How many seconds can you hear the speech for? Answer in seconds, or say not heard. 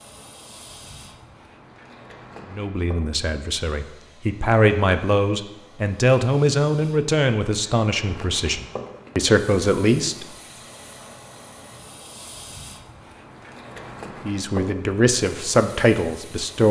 10 s.